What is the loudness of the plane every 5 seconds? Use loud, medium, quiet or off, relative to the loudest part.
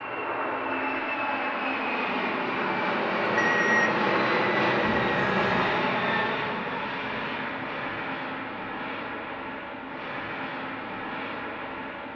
loud, loud, medium.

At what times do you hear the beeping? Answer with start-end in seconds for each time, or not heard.
3.2-4.0.